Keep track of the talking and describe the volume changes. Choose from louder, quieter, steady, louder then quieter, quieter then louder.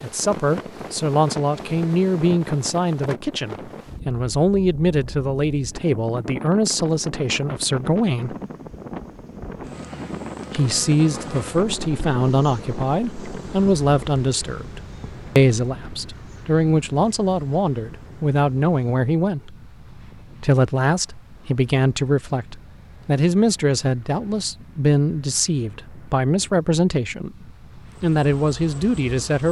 steady.